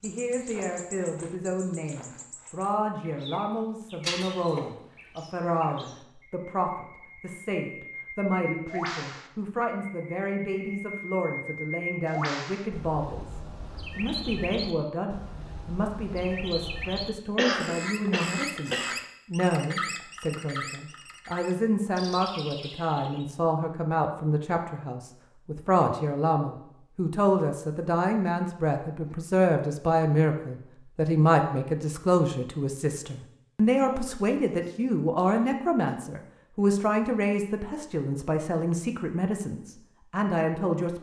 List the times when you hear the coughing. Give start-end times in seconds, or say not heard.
4.0-4.7, 17.4-18.9, 33.8-36.0.